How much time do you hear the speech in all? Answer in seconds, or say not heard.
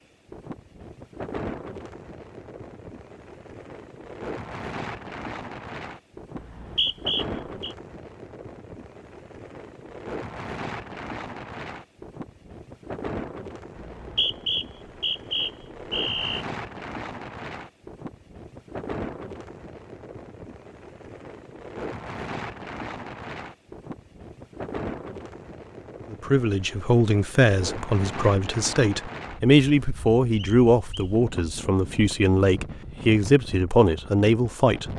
9 s.